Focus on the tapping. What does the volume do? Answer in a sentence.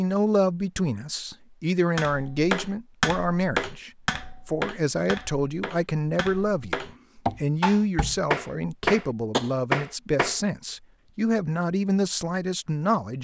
The volume of the tapping goes down, then up.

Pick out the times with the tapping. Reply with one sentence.
You can hear the tapping from 1.9 to 10.3 s.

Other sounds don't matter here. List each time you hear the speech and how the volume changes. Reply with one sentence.
You can hear the speech from 0.0 to 13.1 s, at a steady volume.